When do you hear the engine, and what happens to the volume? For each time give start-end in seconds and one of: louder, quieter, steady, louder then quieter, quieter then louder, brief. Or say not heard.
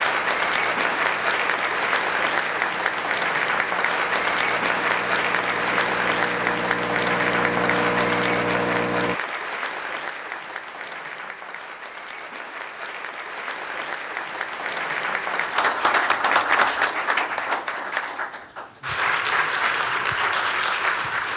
0.0-9.2 louder.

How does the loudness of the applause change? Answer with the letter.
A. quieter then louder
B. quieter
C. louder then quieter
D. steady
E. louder
A.